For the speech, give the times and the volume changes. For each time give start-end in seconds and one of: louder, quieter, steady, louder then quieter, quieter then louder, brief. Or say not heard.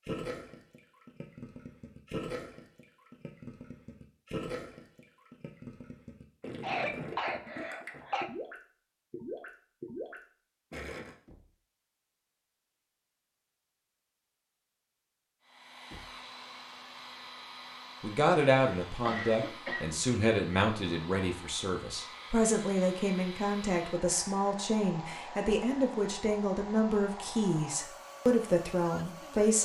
18.0-29.6 steady.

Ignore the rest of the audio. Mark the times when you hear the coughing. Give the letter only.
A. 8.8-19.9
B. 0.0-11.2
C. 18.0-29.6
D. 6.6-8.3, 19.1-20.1
D.